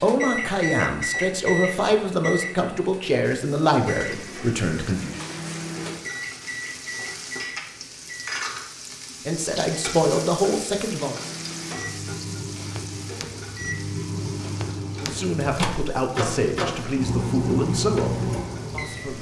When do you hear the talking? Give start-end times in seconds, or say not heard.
0.0-5.2, 9.2-11.2, 15.0-19.1.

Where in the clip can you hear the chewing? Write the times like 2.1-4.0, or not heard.
not heard.